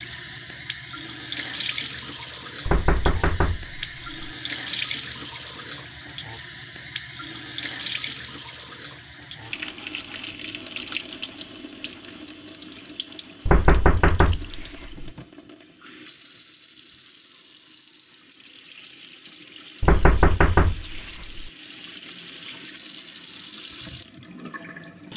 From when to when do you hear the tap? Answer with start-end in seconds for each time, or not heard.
0.0-25.1.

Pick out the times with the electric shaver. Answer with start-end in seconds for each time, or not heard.
not heard.